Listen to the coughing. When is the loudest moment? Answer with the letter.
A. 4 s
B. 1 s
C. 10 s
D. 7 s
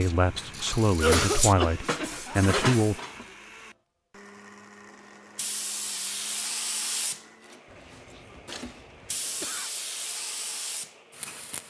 B.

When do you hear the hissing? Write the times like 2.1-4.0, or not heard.
0.0-3.0, 5.3-11.6.